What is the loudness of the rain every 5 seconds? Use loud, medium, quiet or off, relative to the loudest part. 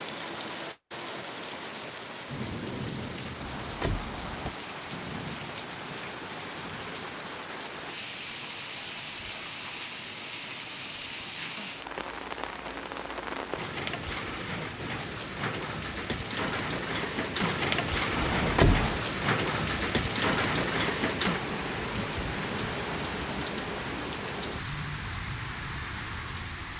medium, medium, medium, loud, loud, medium.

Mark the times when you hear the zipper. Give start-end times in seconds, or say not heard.
not heard.